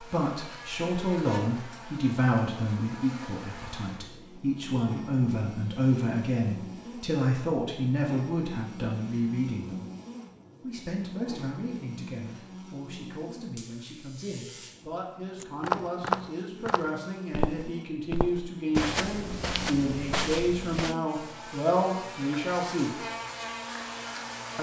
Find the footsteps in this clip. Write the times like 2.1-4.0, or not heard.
15.4-20.9.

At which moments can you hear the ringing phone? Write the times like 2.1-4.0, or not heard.
not heard.